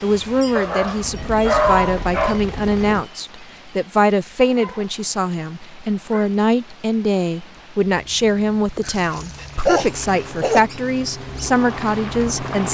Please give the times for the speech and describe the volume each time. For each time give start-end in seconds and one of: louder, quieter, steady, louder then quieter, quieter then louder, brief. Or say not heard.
0.0-12.7 steady.